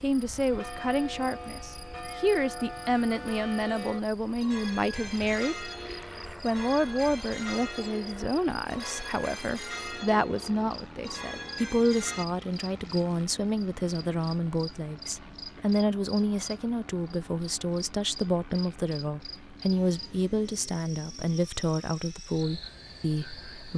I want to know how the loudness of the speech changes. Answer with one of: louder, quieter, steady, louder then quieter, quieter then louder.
steady.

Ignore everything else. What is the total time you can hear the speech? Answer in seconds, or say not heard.
23 s.